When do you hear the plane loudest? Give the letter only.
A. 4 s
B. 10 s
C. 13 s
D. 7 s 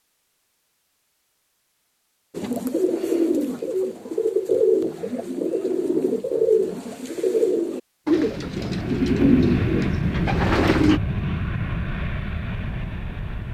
B.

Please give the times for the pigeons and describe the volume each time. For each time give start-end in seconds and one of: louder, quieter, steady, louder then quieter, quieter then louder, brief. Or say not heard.
2.3-11.0 steady.